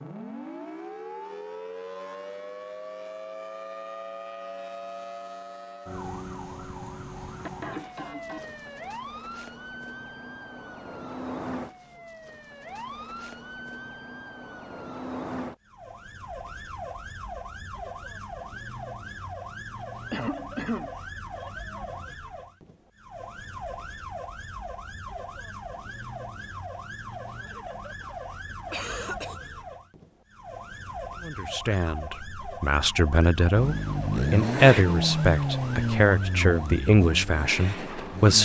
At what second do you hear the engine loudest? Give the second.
35 s.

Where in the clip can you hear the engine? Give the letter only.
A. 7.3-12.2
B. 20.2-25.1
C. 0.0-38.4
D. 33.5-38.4
D.